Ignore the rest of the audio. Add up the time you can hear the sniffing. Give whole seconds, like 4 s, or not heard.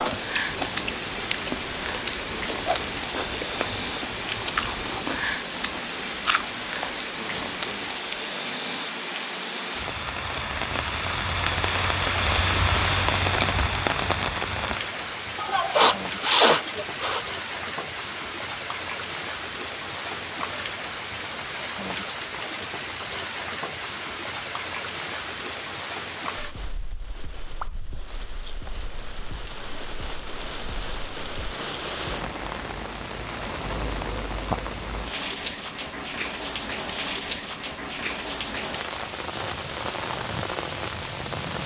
2 s.